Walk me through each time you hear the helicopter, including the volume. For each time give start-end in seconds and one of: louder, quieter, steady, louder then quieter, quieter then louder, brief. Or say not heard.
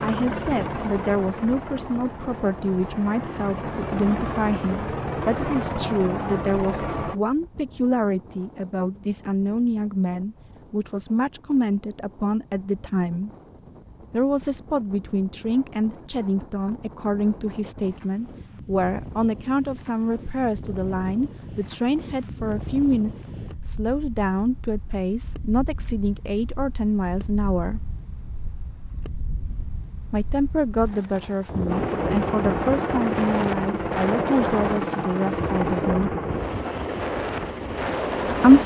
0.0-7.2 quieter then louder
31.6-38.6 quieter.